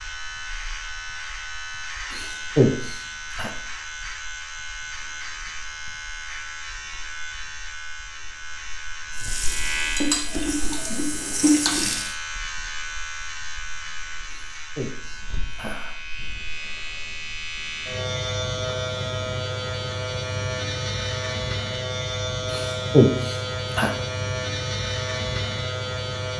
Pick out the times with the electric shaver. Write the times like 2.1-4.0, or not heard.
0.0-26.3.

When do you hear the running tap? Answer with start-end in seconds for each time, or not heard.
9.2-12.1.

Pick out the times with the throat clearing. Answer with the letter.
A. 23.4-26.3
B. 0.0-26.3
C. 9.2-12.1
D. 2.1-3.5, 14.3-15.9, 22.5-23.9
D.